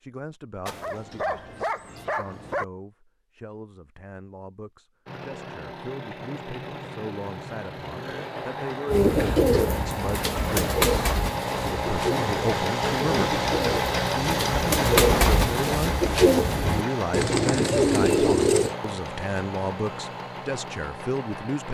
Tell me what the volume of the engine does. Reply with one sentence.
The loudness of the engine goes up, then down.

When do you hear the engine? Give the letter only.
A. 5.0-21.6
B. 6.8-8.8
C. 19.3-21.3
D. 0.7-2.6
A.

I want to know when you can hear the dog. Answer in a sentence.
You can hear the dog from 0.7 to 2.6 s.